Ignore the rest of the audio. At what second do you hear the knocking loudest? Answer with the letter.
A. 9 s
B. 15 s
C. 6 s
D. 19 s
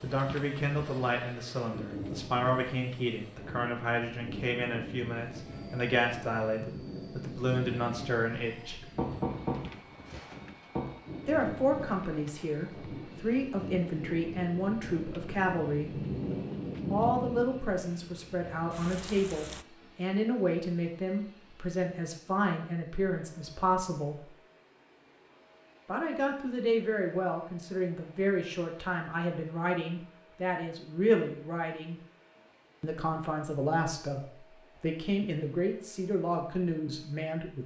A.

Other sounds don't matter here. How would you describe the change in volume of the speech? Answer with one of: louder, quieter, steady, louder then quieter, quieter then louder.
steady.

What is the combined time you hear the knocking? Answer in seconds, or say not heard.
2 s.